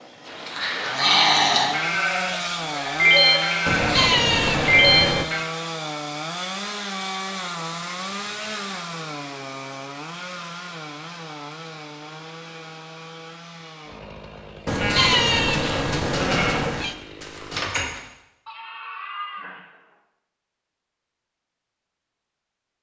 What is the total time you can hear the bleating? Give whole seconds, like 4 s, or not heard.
10 s.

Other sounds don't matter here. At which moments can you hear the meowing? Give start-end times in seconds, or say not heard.
3.6-5.2, 14.7-16.9.